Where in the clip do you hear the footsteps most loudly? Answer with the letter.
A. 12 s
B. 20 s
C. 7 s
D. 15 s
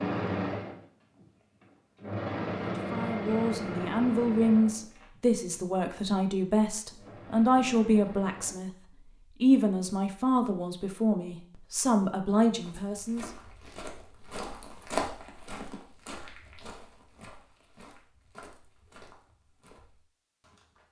D.